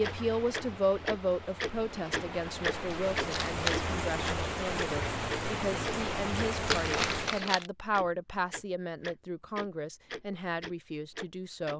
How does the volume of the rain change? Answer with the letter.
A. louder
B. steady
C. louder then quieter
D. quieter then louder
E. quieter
A.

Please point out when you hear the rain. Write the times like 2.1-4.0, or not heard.
0.0-7.5.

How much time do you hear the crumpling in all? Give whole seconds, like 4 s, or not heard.
2 s.